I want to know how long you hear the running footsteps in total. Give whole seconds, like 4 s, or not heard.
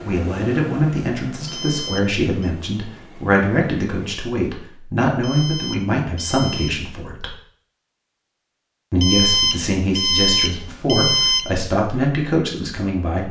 not heard.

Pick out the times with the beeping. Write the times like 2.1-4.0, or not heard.
1.4-2.5, 5.2-6.8, 9.0-11.4.